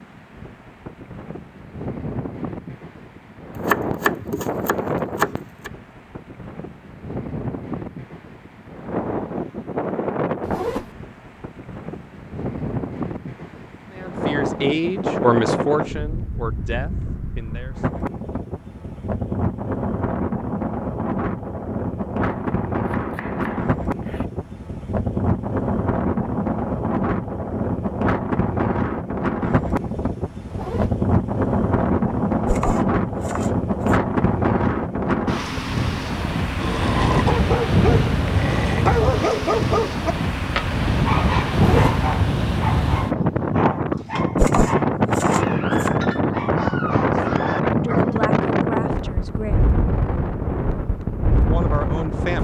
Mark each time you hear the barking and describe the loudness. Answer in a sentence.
The barking can be heard from 36.5 to 48.3 s, getting quieter.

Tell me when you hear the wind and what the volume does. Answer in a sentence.
You can hear the wind from 0.0 to 52.4 s, getting louder.